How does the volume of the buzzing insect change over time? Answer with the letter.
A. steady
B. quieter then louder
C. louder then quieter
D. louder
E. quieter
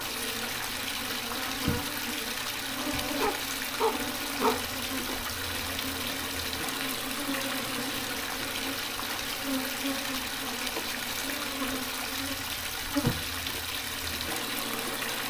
A.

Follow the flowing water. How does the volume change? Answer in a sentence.
The loudness of the flowing water stays about the same.